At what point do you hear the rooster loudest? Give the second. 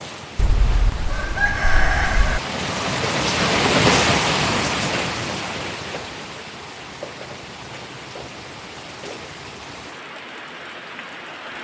2 s.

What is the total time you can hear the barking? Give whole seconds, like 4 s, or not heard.
not heard.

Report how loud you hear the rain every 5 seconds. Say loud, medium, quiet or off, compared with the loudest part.
loud, medium, quiet.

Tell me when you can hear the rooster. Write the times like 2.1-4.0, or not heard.
0.3-2.4.